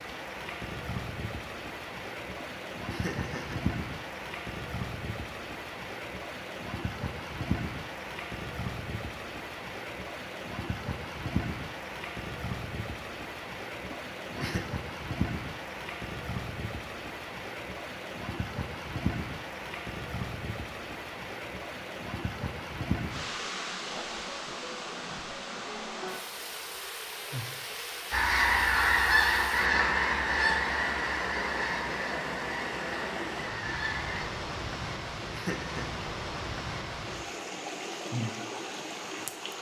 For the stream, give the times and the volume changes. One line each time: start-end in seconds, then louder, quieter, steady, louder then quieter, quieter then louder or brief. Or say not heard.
0.0-39.5 steady.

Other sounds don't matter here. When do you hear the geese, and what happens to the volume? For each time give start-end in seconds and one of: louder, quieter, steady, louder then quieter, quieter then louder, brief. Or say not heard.
28.1-34.2 quieter.